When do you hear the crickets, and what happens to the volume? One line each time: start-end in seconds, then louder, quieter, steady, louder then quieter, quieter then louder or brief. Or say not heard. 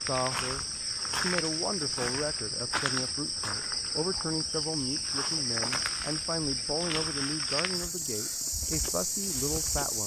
0.0-10.0 steady.